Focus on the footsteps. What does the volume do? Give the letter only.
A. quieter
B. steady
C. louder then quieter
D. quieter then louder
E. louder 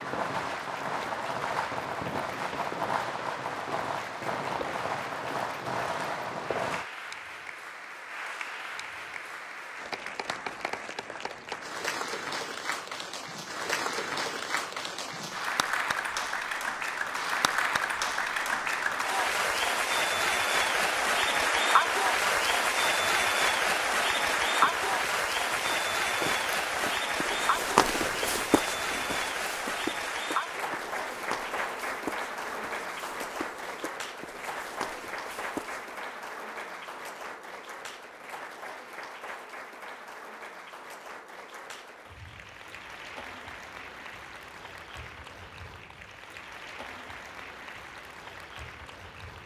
C.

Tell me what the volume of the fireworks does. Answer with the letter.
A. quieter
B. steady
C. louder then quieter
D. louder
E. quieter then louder
B.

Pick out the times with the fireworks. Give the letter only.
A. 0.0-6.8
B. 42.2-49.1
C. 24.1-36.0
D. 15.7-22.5
A.